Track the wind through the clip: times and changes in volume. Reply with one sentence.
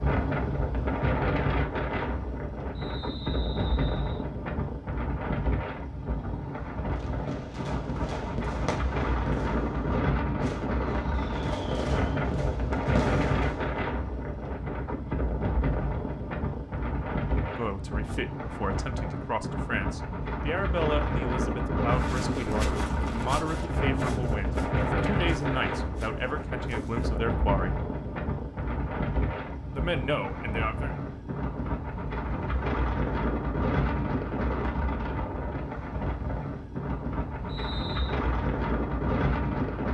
The wind can be heard from 0.0 to 39.8 s, at a steady volume.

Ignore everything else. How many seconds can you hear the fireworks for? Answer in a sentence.
The fireworks can be heard for 7 seconds in total.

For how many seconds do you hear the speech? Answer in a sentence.
You can hear the speech for 12 seconds altogether.